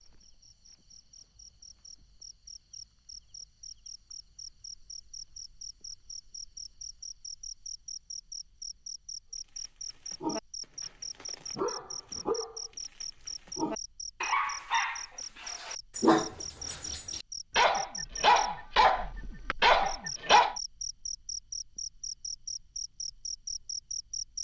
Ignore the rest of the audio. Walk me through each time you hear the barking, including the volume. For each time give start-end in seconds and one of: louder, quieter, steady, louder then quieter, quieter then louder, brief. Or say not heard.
9.7-20.6 louder.